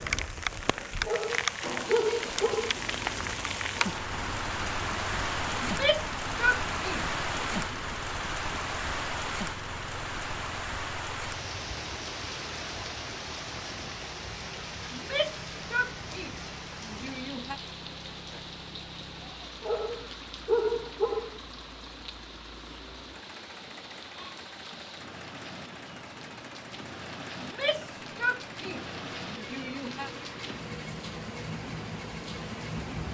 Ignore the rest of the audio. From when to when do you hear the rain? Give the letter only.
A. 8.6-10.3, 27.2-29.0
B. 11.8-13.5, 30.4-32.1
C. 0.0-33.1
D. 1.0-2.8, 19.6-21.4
C.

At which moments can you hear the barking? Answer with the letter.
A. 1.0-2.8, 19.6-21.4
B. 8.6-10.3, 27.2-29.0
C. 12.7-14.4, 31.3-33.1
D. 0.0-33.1
A.